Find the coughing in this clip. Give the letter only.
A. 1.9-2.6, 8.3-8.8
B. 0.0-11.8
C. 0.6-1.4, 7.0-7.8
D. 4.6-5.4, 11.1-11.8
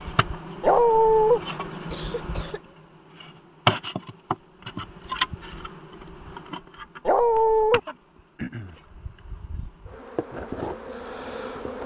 A.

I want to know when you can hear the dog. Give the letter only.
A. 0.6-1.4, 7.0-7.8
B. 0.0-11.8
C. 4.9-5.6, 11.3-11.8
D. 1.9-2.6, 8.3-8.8
A.